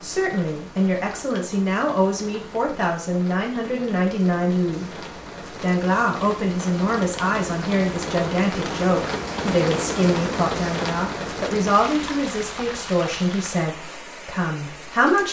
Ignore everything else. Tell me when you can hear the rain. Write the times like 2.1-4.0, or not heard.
0.0-15.2.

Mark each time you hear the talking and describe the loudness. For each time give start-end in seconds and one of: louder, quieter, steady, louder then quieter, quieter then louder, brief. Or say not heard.
0.0-15.2 steady.